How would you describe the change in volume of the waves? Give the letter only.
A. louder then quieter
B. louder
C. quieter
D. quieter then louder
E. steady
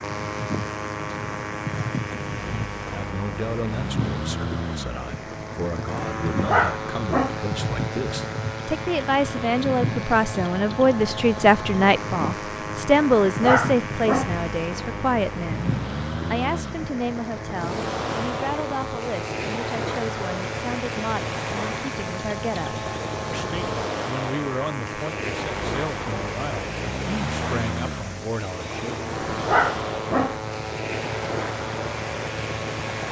E.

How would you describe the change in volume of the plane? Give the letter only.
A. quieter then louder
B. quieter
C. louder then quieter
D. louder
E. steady
E.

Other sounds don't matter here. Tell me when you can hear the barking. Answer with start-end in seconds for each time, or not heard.
6.3-7.4, 13.2-14.3, 29.3-30.4.